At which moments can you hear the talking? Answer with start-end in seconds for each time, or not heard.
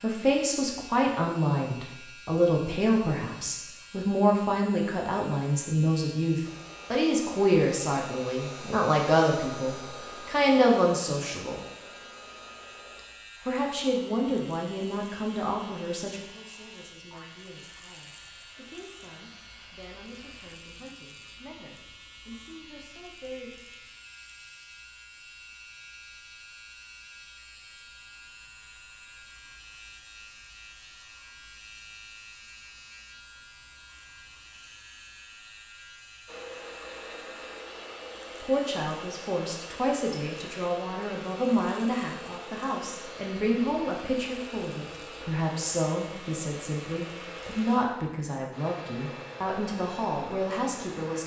0.0-11.6, 13.4-23.5, 38.4-51.2.